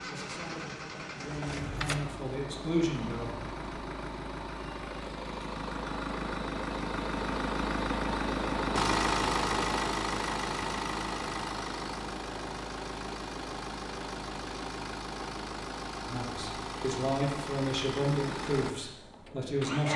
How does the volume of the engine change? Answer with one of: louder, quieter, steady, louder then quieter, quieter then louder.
louder then quieter.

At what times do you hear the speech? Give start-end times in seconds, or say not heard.
0.0-3.4, 16.1-19.9.